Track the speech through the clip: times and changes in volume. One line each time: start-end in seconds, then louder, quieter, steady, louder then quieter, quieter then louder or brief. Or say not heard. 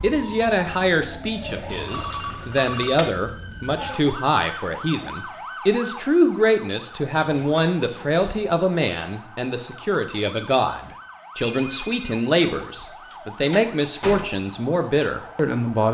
0.0-15.8 steady.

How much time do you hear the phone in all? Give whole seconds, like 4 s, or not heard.
2 s.